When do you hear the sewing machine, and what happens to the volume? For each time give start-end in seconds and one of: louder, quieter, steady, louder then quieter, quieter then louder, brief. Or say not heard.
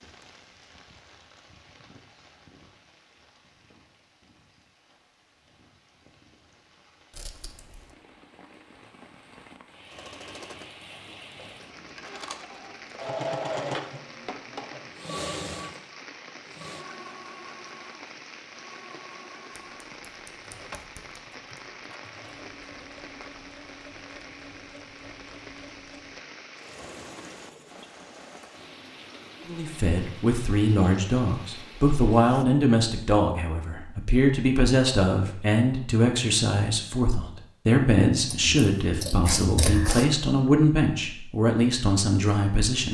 9.9-27.9 quieter.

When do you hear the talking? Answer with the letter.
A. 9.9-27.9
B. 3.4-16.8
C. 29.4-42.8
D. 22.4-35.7
C.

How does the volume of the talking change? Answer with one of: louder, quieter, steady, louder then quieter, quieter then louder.
steady.